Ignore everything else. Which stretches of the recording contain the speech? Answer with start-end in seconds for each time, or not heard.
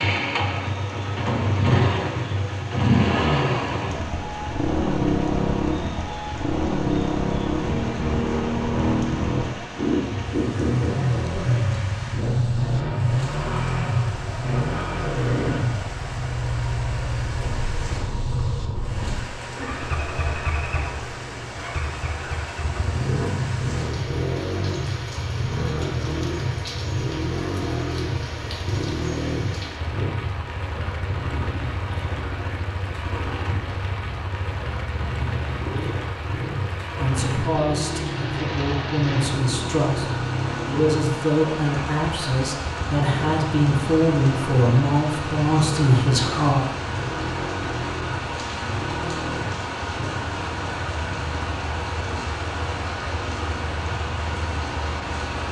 37.0-46.6.